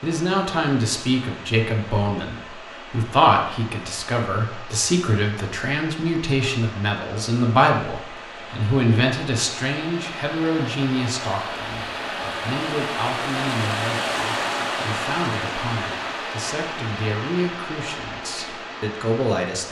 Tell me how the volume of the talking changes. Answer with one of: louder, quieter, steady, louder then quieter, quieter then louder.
quieter.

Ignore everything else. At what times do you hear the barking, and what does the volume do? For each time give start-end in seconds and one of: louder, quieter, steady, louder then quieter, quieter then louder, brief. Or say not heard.
not heard.